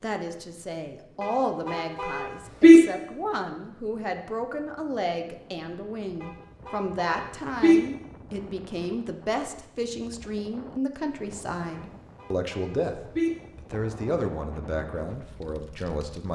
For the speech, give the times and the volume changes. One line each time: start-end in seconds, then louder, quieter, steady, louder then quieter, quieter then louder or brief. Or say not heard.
0.0-16.3 steady.